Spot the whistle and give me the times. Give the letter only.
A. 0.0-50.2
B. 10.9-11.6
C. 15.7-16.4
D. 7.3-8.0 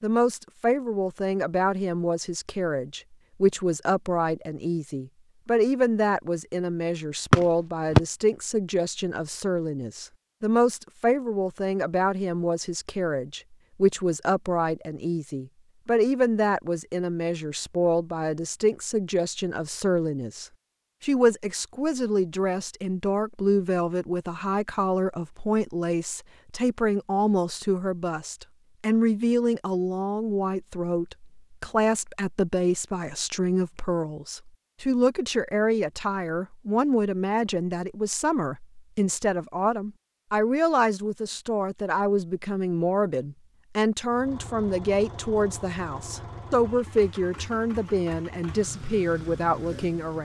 D.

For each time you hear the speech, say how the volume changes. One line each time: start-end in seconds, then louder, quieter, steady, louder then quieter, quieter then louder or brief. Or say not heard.
0.0-50.2 steady.